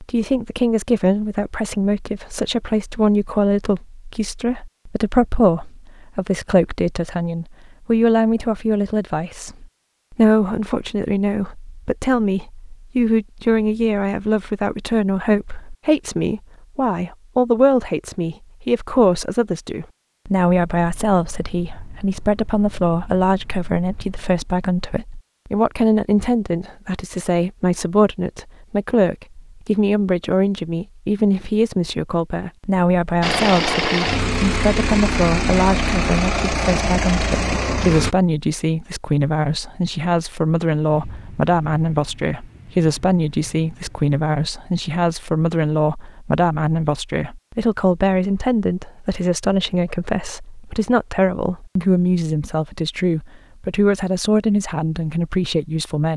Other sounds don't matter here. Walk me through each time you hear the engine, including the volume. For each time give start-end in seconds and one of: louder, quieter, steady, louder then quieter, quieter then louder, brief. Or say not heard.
33.2-38.1 steady.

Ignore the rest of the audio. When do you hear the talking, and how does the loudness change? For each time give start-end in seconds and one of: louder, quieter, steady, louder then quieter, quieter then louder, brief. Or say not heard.
0.0-56.1 steady.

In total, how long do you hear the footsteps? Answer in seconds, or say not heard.
not heard.